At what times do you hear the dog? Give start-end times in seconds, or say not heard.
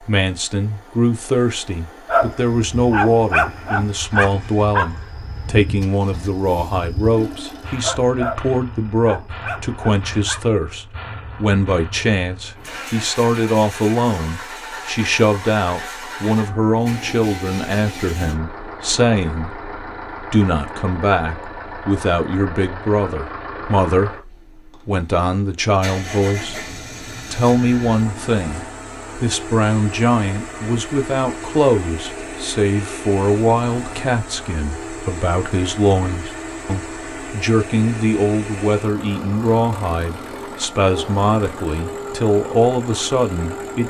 2.0-10.4.